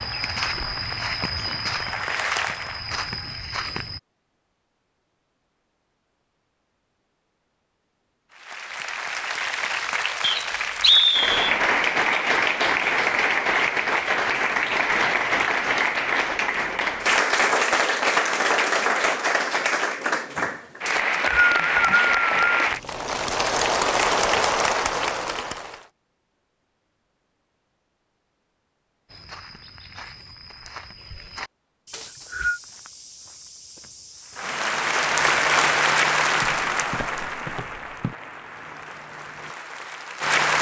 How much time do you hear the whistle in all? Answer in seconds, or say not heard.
4 s.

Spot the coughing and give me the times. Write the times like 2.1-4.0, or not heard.
not heard.